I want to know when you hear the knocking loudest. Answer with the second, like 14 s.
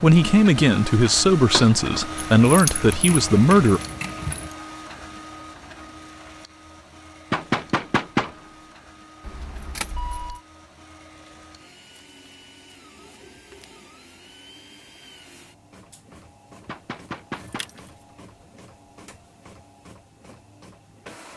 8 s.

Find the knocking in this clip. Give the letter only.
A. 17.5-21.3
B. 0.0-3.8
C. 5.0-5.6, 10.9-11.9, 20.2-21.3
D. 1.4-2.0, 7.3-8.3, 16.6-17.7
D.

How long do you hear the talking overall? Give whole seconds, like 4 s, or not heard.
4 s.